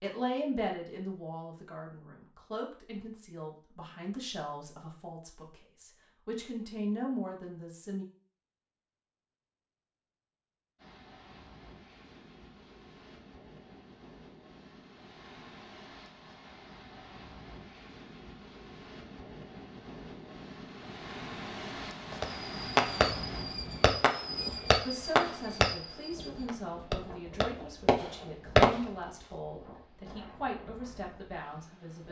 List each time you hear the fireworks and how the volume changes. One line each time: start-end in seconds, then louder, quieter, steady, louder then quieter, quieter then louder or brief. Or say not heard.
22.1-28.8 quieter then louder.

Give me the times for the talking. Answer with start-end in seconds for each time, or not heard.
0.0-8.1, 24.9-32.0.